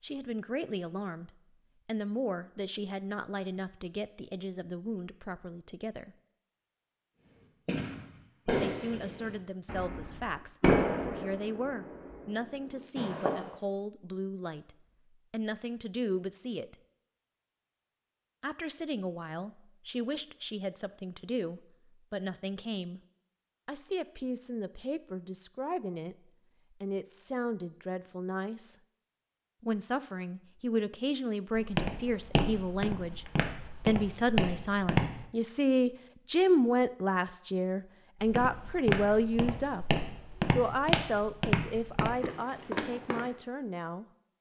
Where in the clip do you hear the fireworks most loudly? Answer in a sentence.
The volume of the fireworks peaks at 11 seconds.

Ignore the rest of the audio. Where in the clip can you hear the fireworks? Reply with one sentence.
The fireworks can be heard from 7.7 to 13.5 s.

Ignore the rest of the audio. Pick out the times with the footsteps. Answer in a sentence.
You can hear the footsteps from 31.6 to 35.2 s and from 38.2 to 43.3 s.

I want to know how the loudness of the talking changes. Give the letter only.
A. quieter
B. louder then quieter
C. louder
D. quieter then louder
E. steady
C.